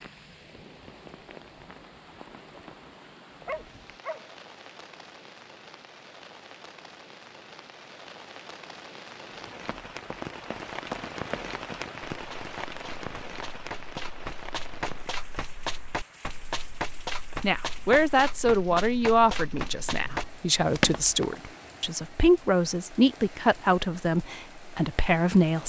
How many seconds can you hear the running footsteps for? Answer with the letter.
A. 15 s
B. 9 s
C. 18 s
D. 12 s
D.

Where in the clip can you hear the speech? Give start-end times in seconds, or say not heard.
17.4-25.6.